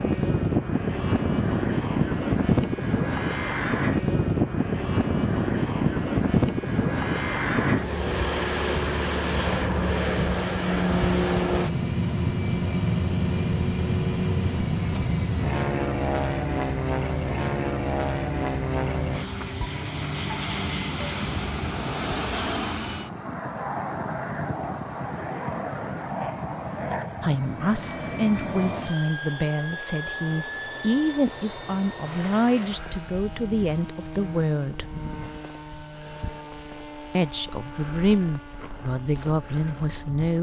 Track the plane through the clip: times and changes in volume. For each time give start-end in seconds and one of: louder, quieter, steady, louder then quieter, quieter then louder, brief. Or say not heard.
0.0-40.3 quieter.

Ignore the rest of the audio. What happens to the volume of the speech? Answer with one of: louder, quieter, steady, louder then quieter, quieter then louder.
steady.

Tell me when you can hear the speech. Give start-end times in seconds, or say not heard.
27.2-35.0, 37.1-40.3.